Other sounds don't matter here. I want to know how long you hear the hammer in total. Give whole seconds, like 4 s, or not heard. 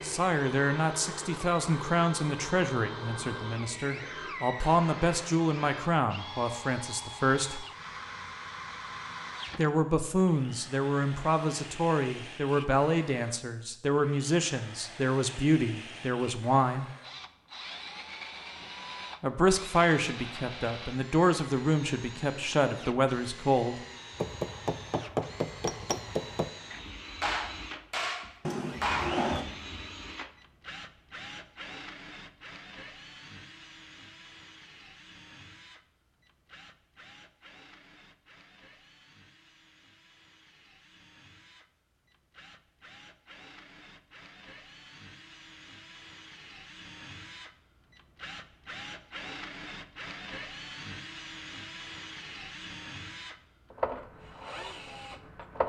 5 s.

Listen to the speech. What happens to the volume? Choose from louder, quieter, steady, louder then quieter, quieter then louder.
steady.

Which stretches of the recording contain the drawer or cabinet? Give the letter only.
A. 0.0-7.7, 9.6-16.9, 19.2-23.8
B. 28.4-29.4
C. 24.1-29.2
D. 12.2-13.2
B.